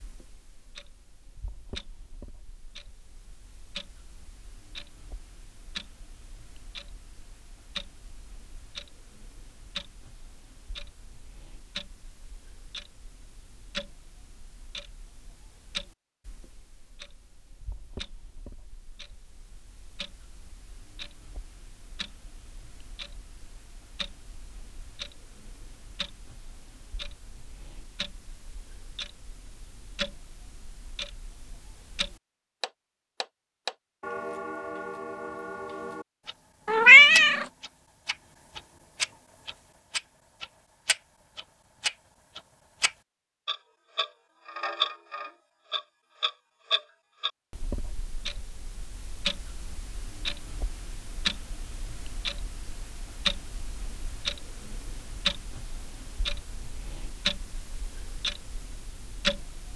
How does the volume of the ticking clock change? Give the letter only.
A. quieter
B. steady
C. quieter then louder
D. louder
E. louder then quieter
D.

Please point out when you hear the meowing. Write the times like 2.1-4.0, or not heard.
36.6-37.5.